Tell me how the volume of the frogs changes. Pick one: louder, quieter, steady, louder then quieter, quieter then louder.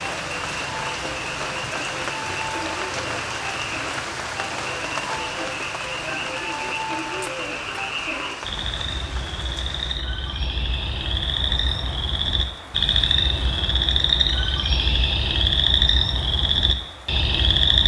louder.